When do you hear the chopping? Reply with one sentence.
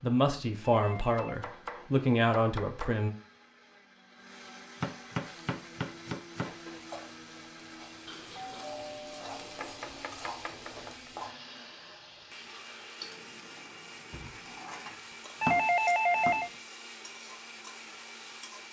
The chopping can be heard from 0.9 to 3.0 s, from 4.8 to 6.5 s, from 9.6 to 11.1 s and from 14.1 to 16.5 s.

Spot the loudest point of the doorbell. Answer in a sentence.
The volume of the doorbell peaks at 16 seconds.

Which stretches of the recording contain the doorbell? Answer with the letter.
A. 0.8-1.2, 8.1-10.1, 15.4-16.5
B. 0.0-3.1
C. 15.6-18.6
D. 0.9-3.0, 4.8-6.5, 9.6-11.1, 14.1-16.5
A.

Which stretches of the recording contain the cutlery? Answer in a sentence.
The cutlery can't be heard in this clip.